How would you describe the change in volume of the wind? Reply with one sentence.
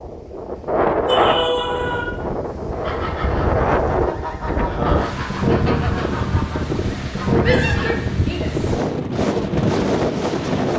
The volume of the wind stays about the same.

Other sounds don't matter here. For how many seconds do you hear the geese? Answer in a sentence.
You can hear the geese for 5 seconds altogether.